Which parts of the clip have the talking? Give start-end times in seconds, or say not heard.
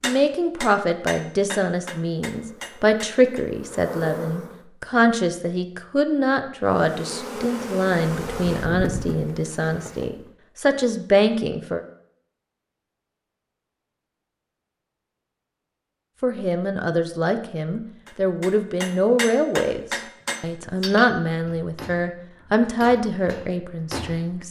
0.0-11.8, 16.2-24.4.